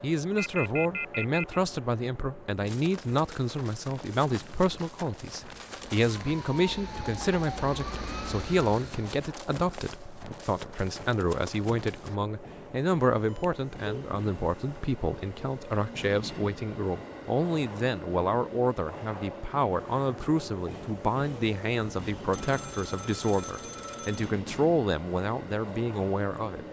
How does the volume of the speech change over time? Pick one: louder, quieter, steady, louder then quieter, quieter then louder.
steady.